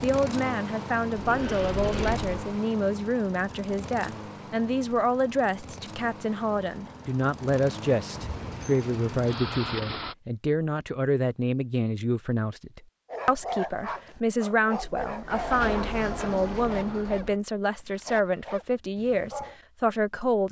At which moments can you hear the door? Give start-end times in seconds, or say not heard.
1.1-2.4, 8.2-9.8, 14.8-17.4.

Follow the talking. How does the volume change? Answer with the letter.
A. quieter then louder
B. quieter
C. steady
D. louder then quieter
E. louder
C.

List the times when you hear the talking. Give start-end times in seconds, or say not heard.
0.0-20.4.